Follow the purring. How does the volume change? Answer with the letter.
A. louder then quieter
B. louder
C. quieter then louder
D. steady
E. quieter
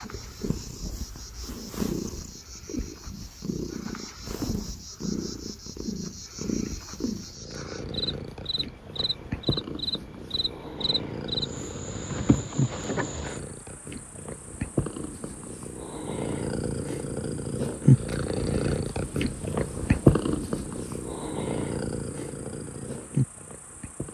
B.